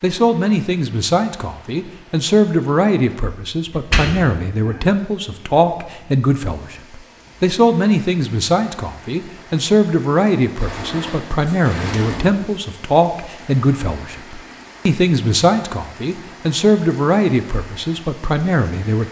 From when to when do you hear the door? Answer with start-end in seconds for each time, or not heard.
3.7-4.8, 10.6-12.5.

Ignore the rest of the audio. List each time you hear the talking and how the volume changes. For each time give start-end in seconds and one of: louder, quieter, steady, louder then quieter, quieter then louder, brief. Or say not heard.
0.0-19.0 steady.